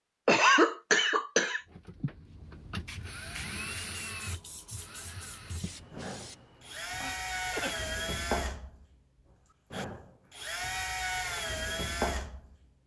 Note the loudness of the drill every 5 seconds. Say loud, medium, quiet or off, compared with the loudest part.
medium, loud, loud.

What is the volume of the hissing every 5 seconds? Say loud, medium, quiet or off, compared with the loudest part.
loud, loud, off.